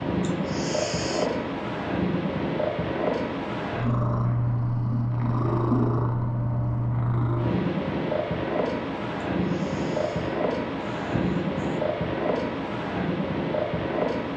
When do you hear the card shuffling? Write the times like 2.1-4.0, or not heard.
not heard.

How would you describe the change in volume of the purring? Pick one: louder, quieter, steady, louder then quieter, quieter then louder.
steady.